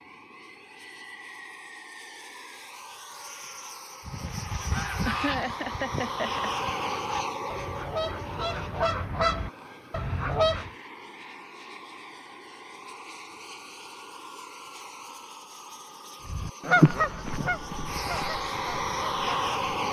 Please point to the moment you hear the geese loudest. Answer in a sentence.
The loudest moment of the geese is at 17 seconds.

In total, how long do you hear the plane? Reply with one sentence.
You can hear the plane for 20 seconds altogether.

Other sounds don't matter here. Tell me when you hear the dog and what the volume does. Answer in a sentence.
The dog can't be heard in this clip.